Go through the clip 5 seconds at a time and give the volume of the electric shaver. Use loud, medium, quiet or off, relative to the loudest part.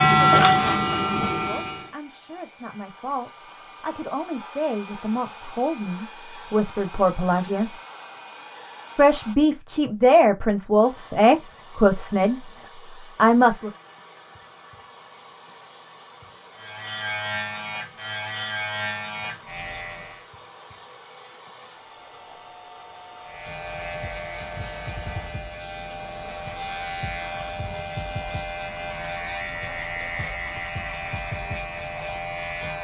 loud, off, off, quiet, quiet, quiet, quiet.